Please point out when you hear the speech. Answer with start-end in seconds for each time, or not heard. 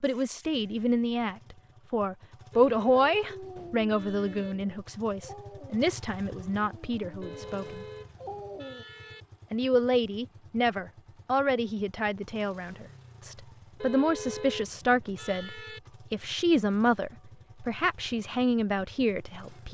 0.0-7.8, 9.5-19.6.